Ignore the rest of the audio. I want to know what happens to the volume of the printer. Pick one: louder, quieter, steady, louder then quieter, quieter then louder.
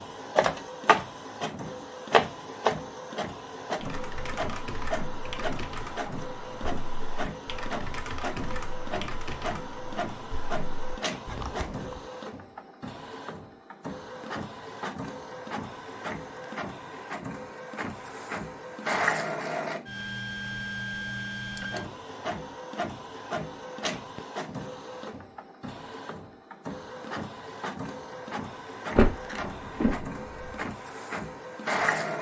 quieter.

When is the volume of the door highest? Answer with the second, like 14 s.
29 s.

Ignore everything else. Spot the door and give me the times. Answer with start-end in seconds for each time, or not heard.
28.9-30.5.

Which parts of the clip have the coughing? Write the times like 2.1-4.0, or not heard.
not heard.